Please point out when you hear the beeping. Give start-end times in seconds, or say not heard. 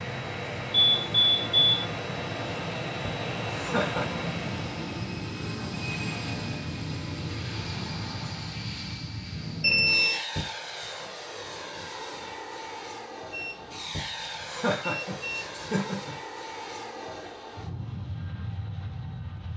0.7-1.9, 9.6-10.2, 13.3-15.6.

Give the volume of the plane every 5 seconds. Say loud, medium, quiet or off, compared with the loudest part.
loud, loud, medium, medium.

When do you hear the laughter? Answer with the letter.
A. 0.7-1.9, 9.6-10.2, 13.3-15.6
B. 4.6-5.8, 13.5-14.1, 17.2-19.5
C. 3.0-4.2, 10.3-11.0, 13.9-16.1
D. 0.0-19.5
C.